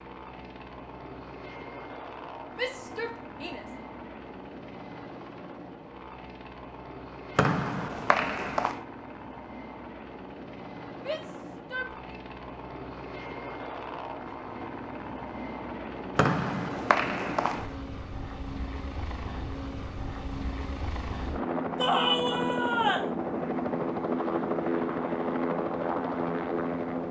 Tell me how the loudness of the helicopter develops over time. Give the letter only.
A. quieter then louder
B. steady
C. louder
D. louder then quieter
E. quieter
C.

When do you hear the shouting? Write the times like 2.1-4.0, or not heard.
2.5-3.6, 10.9-12.0, 21.8-23.1.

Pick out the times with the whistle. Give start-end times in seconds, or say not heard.
7.3-8.8, 16.1-17.8.